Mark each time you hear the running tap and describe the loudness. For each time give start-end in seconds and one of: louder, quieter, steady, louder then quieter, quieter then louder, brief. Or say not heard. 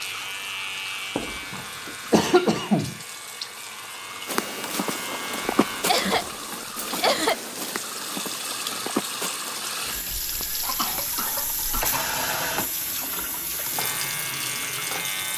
0.0-15.3 louder.